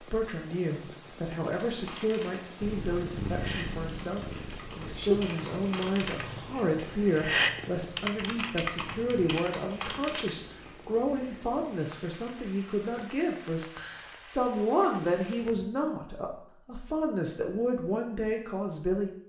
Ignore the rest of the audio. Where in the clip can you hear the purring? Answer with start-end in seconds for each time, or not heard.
2.6-9.3.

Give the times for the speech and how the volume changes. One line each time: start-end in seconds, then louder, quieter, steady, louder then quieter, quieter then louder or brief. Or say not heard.
0.0-19.1 steady.